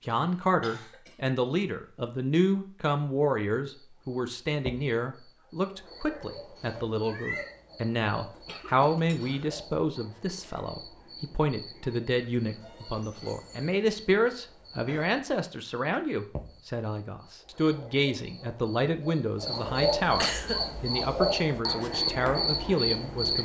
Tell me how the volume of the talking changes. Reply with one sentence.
The volume of the talking stays about the same.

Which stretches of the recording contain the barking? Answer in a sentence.
The barking can't be heard in this clip.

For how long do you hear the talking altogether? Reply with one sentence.
The talking can be heard for 23 seconds in total.